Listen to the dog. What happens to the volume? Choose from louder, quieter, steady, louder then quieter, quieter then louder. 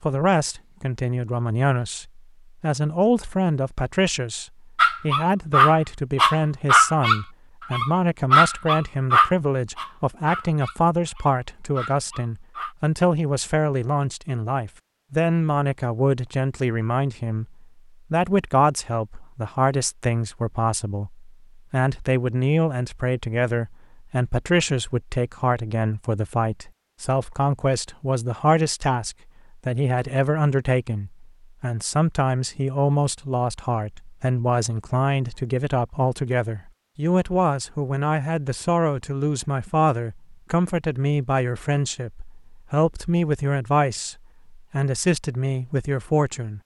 quieter.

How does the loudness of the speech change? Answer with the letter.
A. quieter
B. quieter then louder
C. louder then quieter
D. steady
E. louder
D.